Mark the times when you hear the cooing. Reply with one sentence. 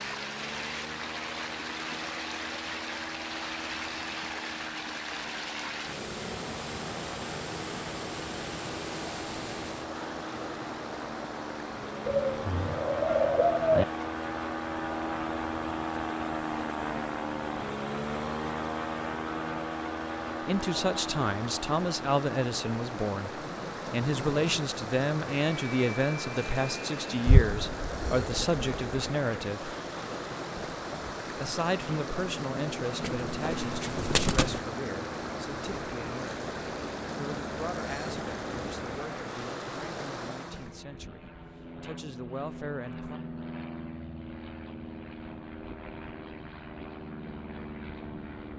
You can hear the cooing from 12.1 to 13.8 s, from 27.2 to 28.6 s and from 33.0 to 34.6 s.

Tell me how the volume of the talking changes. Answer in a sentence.
The loudness of the talking goes down.